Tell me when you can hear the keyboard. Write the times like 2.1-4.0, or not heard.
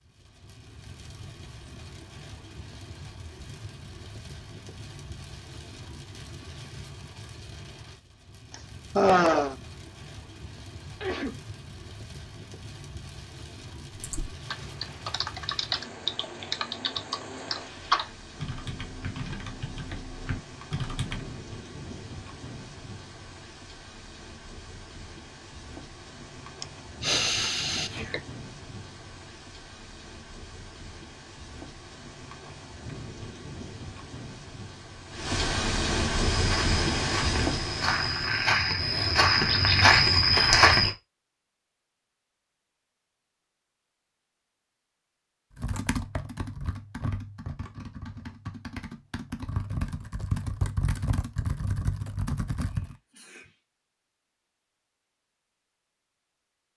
13.9-21.4, 45.5-53.0.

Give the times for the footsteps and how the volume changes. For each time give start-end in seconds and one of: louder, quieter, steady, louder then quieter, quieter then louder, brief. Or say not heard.
36.4-41.0 louder.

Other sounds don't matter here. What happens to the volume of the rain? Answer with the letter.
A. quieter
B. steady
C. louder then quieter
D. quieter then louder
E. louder
E.